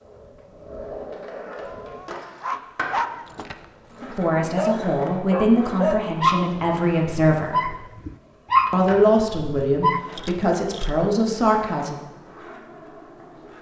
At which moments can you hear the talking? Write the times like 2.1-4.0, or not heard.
4.0-7.7, 8.7-11.9.